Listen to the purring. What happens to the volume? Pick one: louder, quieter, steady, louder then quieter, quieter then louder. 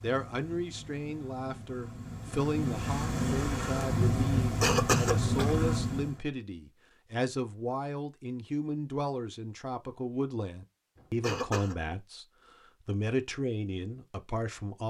louder.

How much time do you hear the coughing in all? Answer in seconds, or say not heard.
2 s.